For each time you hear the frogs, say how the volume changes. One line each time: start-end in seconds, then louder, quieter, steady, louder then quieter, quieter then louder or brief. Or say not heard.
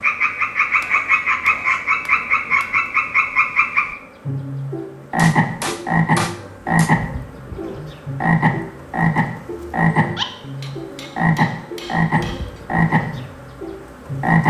0.0-14.4 steady.